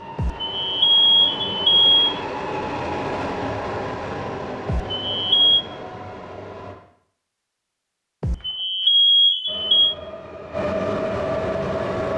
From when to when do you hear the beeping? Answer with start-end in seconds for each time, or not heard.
0.1-2.2, 4.7-5.7, 8.2-9.9.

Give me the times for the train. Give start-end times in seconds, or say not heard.
0.0-6.8, 9.4-12.1.